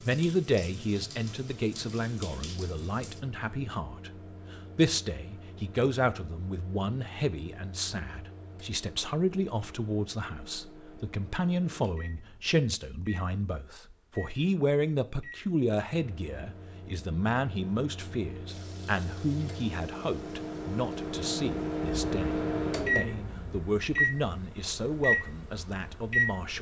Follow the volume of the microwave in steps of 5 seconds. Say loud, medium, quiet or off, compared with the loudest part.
quiet, quiet, quiet, quiet, loud, loud.